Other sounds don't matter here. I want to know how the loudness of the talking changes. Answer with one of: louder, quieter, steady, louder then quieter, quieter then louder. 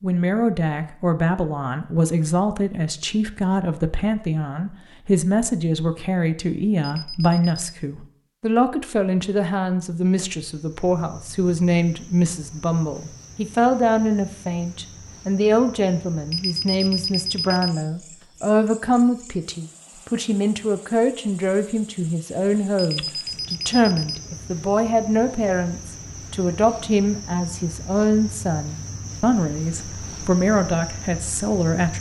steady.